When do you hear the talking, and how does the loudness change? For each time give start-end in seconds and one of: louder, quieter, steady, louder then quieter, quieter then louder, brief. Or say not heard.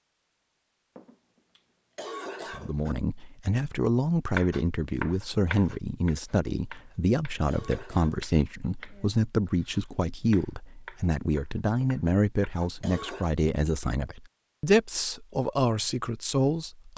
2.5-16.9 steady.